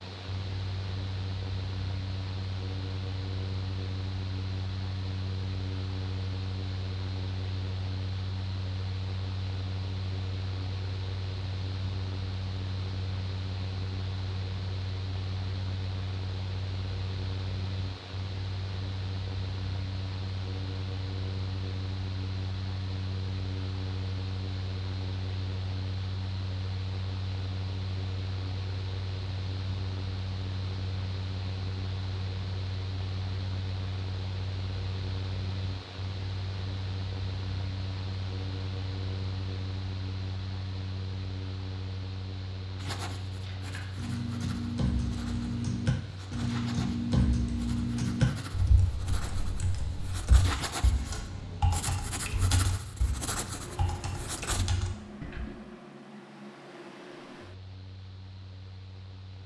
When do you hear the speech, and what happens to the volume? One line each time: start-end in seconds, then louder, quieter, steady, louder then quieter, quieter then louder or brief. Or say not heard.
not heard.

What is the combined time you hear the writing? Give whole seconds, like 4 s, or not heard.
12 s.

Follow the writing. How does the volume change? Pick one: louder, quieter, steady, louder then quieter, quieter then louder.
louder.